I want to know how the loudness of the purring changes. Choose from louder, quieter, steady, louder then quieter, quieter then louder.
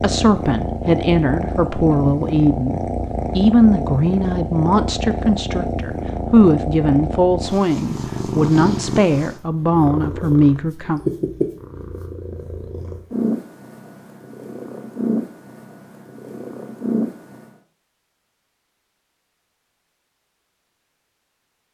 steady.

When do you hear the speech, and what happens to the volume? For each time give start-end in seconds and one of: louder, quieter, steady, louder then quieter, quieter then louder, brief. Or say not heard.
0.0-11.0 steady.